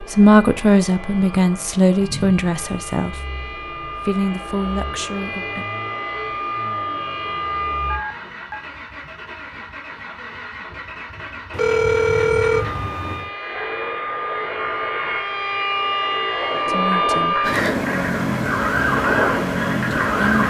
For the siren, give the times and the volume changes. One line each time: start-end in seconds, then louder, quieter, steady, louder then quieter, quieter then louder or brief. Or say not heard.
0.0-8.0 louder
12.5-20.4 louder.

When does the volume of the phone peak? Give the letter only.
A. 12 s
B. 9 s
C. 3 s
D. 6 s
A.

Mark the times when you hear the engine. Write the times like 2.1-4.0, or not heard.
0.0-20.4.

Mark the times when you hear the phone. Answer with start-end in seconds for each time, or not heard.
7.8-8.7, 11.5-13.3.